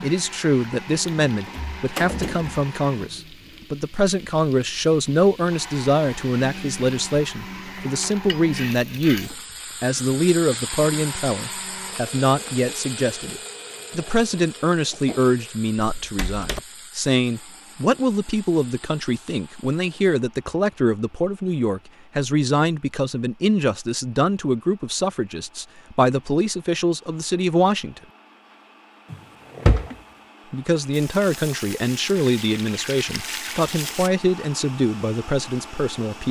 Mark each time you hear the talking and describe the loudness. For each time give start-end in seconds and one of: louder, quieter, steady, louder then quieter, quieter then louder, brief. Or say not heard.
0.0-28.0 steady
30.5-36.2 steady.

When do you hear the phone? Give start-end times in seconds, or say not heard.
not heard.